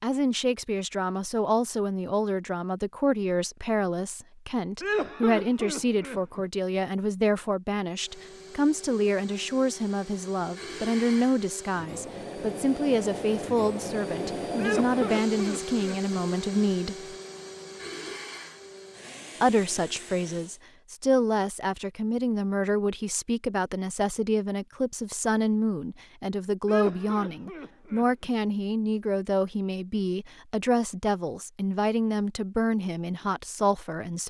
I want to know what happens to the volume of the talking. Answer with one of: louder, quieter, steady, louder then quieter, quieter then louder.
steady.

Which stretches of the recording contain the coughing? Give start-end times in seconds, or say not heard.
4.8-6.4, 14.6-16.2, 26.6-28.3.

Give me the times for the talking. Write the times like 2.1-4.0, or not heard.
0.0-17.1, 19.4-34.2.